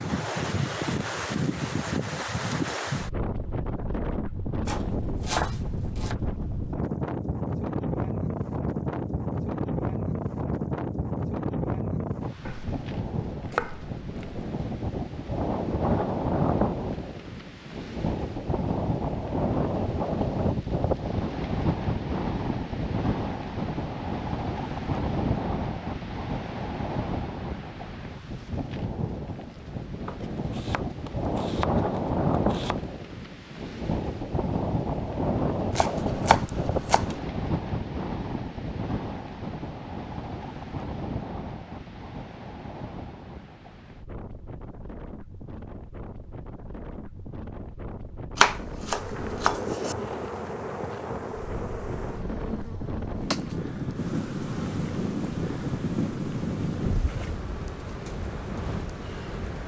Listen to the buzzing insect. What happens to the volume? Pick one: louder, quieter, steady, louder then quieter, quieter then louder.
quieter.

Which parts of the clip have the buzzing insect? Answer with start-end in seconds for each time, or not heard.
48.8-59.6.